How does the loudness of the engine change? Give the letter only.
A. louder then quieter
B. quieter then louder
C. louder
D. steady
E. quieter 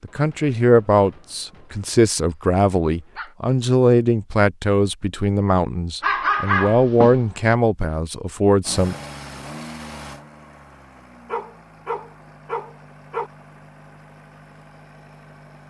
E.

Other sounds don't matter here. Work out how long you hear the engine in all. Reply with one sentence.
You can hear the engine for 7 seconds altogether.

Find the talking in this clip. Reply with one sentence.
The talking can be heard from 0.0 to 8.9 s.